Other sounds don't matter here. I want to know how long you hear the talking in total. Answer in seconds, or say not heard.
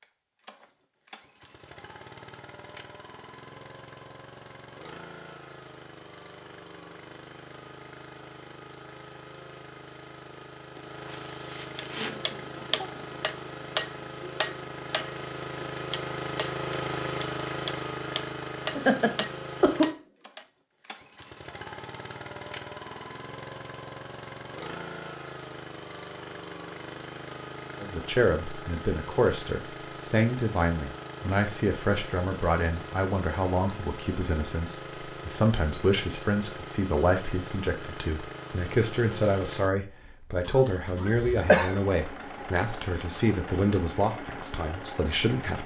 18 s.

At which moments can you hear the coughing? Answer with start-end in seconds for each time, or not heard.
10.8-13.1, 18.8-19.9, 41.0-41.8.